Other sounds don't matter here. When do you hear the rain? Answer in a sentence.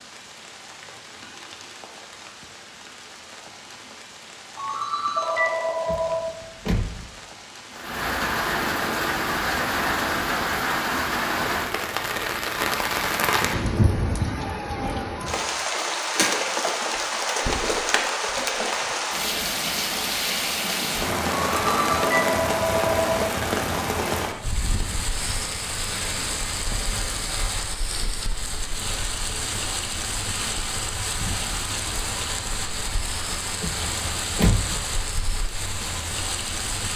The rain can be heard from 0.0 to 36.9 s.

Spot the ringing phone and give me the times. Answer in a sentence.
You can hear the ringing phone from 4.5 to 6.2 s and from 21.3 to 23.2 s.